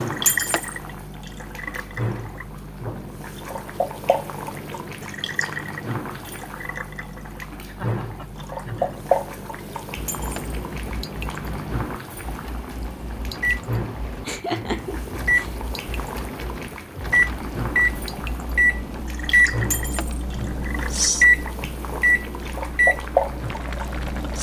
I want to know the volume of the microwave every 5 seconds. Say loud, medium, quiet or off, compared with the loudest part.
quiet, quiet, medium, loud, loud.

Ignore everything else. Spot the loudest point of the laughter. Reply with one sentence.
The volume of the laughter peaks at 15 seconds.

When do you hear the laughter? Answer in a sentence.
You can hear the laughter from 7.7 to 9.0 s and from 14.2 to 15.5 s.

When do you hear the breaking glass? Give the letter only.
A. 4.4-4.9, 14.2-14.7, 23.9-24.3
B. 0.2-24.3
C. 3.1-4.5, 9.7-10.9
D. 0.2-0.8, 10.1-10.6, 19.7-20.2
D.